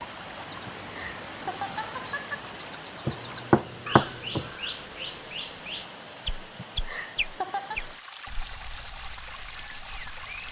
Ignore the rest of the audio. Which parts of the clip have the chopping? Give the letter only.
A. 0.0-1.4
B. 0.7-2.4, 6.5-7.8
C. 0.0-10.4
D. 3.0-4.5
D.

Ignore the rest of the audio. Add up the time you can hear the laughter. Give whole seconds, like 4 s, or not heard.
3 s.